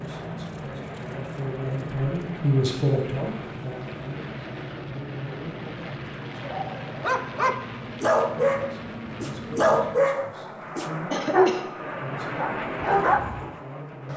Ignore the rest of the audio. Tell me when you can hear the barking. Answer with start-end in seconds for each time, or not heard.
6.4-13.5.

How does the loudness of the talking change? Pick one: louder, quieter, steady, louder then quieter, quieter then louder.
louder then quieter.